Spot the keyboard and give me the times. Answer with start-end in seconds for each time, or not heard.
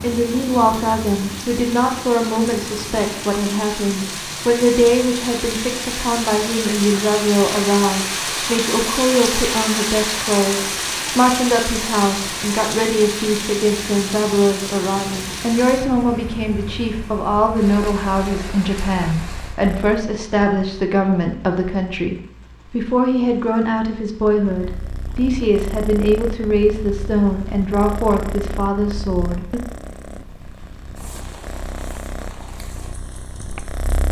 not heard.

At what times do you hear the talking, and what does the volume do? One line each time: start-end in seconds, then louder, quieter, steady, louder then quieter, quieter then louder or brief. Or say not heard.
0.0-29.6 steady.